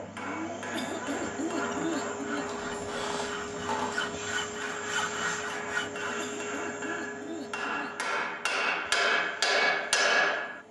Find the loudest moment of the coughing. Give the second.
2 s.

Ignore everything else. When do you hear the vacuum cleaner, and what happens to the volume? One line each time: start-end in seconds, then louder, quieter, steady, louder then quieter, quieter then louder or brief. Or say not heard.
0.0-10.6 quieter.